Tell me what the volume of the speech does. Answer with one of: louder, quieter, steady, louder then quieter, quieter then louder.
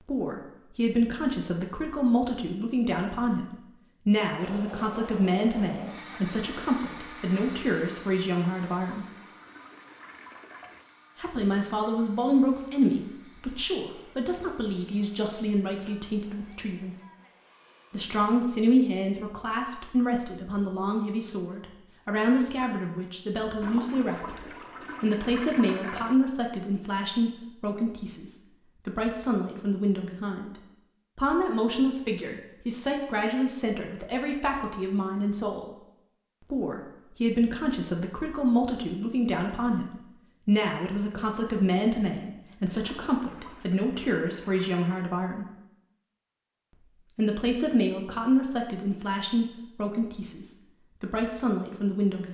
steady.